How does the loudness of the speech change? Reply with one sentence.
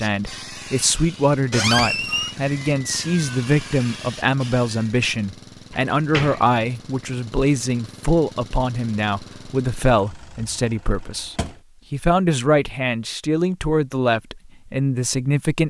The loudness of the speech stays about the same.